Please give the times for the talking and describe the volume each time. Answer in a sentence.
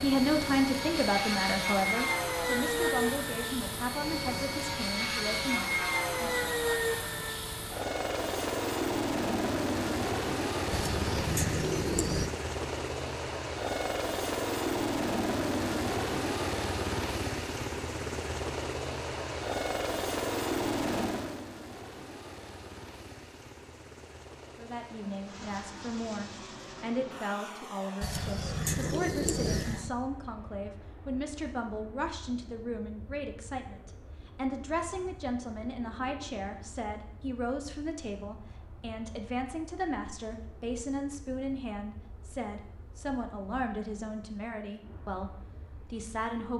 You can hear the talking from 0.0 to 6.5 s, getting quieter; and from 24.6 to 46.5 s, at a steady volume.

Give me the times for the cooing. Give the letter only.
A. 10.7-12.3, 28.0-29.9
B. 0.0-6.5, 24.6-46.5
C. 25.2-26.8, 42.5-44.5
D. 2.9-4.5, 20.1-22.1
A.